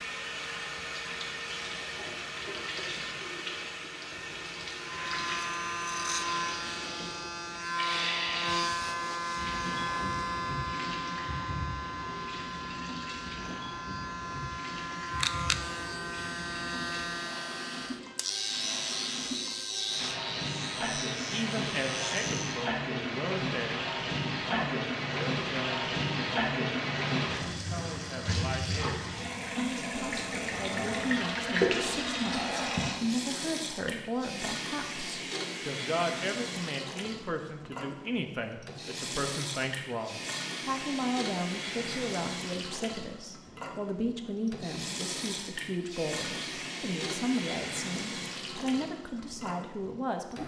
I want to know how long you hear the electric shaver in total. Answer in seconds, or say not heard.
18 s.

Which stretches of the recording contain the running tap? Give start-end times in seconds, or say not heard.
0.0-50.4.